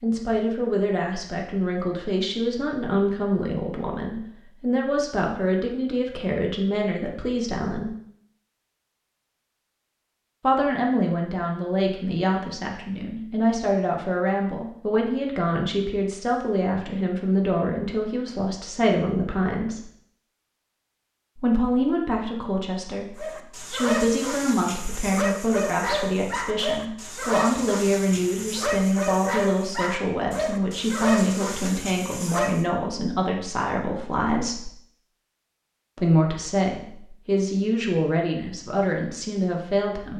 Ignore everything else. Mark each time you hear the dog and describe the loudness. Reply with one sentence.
The dog can be heard from 23.1 to 32.6 s, at a steady volume.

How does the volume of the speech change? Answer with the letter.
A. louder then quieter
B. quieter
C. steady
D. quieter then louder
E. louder
C.